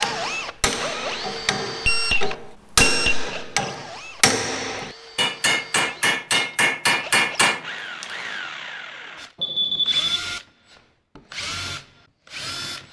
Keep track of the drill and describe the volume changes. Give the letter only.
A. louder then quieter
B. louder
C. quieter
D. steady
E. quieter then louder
E.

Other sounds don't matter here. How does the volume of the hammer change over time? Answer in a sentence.
The loudness of the hammer goes up.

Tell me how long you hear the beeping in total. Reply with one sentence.
The beeping can be heard for 2 seconds in total.